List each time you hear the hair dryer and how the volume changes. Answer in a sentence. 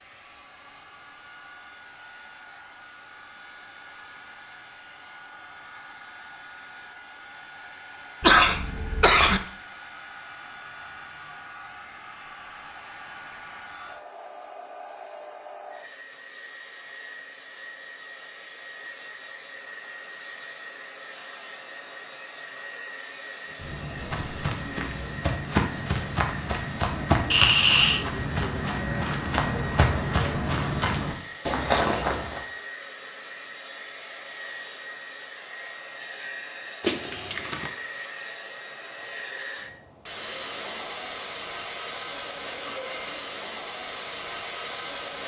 You can hear the hair dryer from 0.0 to 45.2 s, getting louder.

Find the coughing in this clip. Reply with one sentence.
The coughing can be heard from 8.2 to 9.4 s, from 27.3 to 28.1 s and from 36.8 to 37.7 s.